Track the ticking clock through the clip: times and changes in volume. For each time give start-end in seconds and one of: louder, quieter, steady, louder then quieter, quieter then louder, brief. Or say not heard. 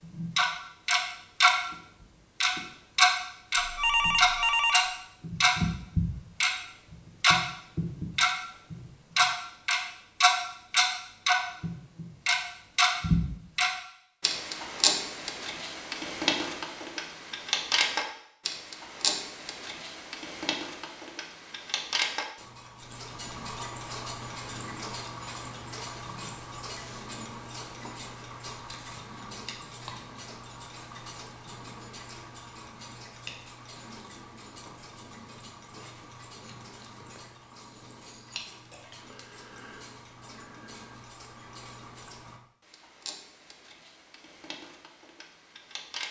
0.0-1.6 brief
2.4-46.0 quieter.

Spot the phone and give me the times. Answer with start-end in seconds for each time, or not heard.
3.5-4.9.